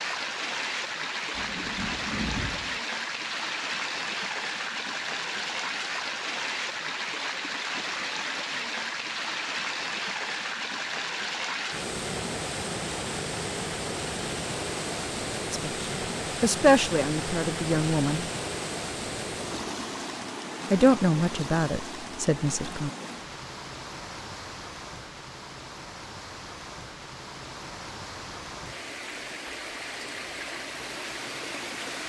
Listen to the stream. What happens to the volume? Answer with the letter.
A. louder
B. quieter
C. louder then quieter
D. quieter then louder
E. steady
B.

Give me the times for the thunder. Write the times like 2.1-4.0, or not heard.
1.4-2.8.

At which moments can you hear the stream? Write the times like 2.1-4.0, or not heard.
0.0-32.0.